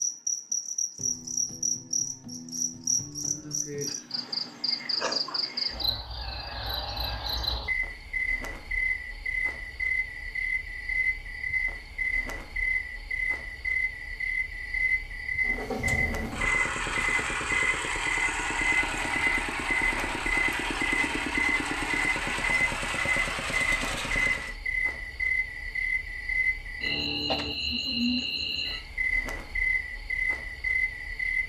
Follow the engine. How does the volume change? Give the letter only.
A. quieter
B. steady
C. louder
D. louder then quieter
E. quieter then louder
B.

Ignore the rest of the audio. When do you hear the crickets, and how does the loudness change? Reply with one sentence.
The crickets can be heard from 0.0 to 31.4 s, at a steady volume.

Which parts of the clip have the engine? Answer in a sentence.
You can hear the engine from 15.4 to 24.6 s.